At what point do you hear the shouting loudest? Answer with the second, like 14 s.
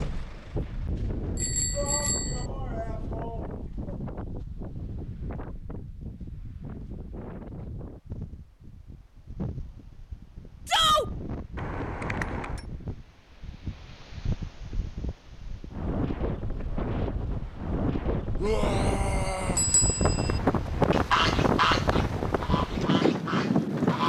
11 s.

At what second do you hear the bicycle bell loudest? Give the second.
2 s.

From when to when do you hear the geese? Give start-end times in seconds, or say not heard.
20.6-24.0.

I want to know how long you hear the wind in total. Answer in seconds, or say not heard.
24 s.